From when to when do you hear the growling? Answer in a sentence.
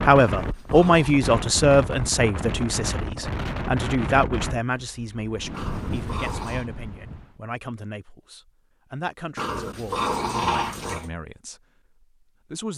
The growling can be heard from 0.3 to 1.2 s, from 5.5 to 6.7 s and from 9.3 to 11.1 s.